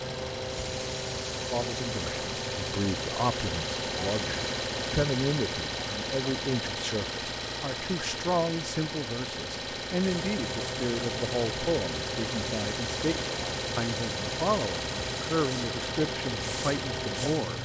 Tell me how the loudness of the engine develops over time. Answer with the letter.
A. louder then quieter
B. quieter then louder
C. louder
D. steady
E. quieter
D.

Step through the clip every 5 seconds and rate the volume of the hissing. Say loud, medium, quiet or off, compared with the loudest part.
loud, off, loud, loud.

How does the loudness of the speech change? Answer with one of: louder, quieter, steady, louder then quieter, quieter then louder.
steady.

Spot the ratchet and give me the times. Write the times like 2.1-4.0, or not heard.
not heard.